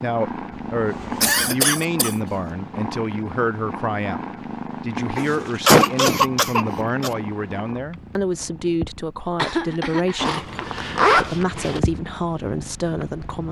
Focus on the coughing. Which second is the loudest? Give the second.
6 s.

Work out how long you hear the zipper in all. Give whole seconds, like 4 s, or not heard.
3 s.